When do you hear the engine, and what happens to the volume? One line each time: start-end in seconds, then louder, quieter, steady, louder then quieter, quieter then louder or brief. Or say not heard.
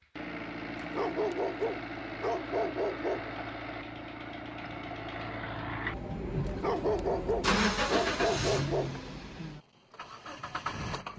0.0-11.1 louder then quieter.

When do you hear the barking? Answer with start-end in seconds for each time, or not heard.
0.8-3.4, 6.5-9.0.